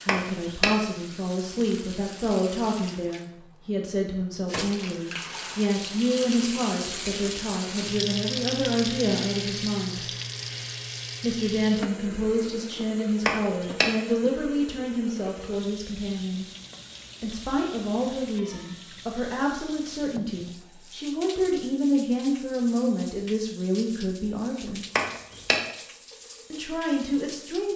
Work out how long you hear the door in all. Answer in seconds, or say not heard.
2 s.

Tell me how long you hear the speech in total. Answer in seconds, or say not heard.
24 s.